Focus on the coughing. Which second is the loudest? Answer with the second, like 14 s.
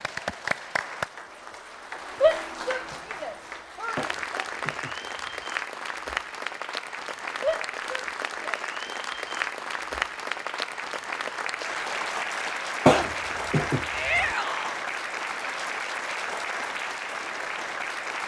13 s.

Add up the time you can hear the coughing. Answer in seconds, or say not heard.
3 s.